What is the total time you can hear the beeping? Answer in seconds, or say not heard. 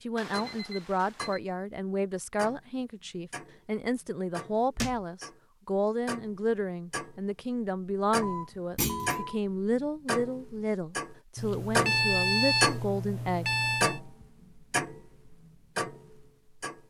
5 s.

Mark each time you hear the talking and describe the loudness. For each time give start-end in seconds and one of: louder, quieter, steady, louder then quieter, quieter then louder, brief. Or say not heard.
0.0-13.6 steady.